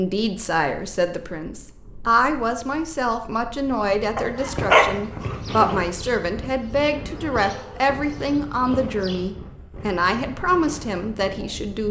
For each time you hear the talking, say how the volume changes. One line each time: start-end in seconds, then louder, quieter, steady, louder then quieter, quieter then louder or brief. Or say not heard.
0.0-11.8 steady.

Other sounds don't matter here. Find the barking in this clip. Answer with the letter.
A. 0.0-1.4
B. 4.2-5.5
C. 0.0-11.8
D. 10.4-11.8
B.